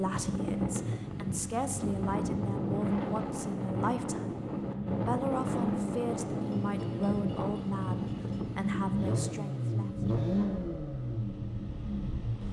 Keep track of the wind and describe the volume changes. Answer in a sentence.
The volume of the wind goes down.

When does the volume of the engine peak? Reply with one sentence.
The loudest moment of the engine is at 10 seconds.